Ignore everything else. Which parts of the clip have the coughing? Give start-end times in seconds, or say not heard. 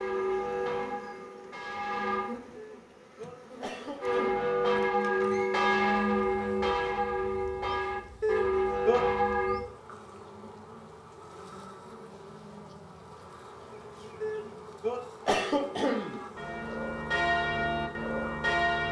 2.5-4.3, 8.2-9.1, 14.2-16.2.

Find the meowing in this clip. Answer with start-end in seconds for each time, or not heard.
not heard.